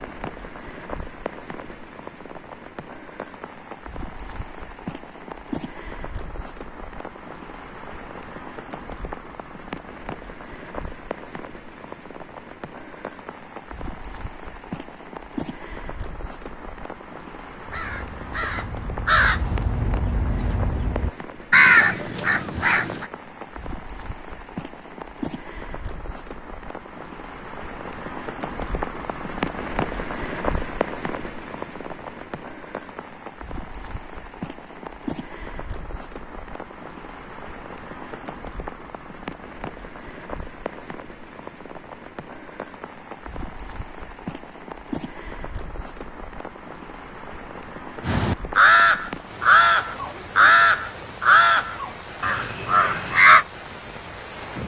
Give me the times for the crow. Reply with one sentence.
The crow can be heard from 17.6 to 23.1 s and from 48.0 to 53.5 s.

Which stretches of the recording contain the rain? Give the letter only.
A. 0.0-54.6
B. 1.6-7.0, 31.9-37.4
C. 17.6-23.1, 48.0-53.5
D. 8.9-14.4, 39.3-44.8
A.